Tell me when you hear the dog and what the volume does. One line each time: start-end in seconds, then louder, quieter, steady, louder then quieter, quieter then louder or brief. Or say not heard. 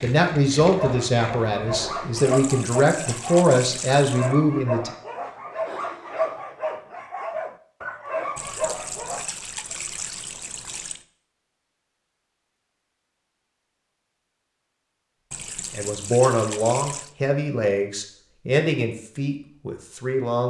0.6-9.3 steady.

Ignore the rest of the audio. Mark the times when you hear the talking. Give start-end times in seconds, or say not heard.
0.0-4.9, 15.7-20.4.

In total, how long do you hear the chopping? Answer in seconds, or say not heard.
not heard.